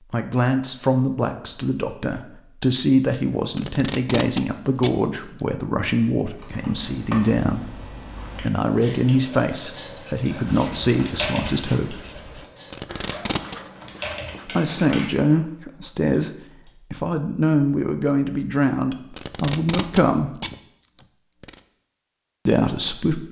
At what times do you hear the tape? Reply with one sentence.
You can hear the tape from 3.5 to 5.0 s, from 12.7 to 13.6 s and from 19.1 to 21.6 s.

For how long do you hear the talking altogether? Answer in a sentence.
The talking can be heard for 18 seconds in total.